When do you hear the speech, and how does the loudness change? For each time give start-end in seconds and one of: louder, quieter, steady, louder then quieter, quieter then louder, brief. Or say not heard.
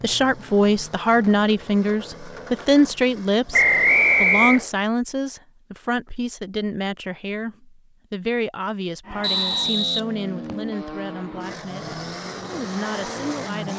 0.0-13.7 quieter.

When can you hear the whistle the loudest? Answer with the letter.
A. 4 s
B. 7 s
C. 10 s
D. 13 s
A.